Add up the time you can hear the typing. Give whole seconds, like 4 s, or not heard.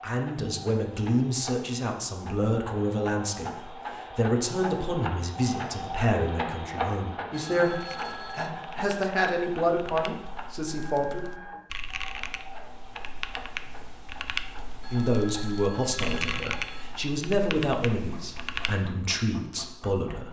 11 s.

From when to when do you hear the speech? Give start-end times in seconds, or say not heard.
0.0-11.4, 14.9-20.2.